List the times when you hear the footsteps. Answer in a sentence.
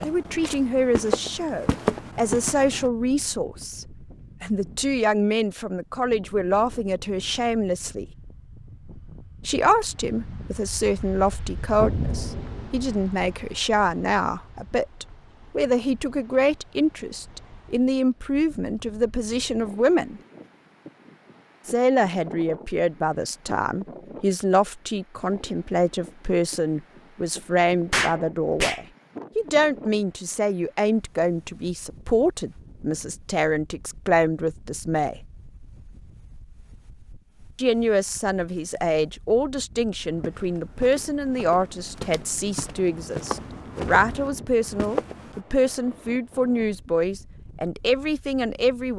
You can hear the footsteps from 0.0 to 2.9 s and from 40.0 to 45.4 s.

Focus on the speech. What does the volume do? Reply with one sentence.
The loudness of the speech stays about the same.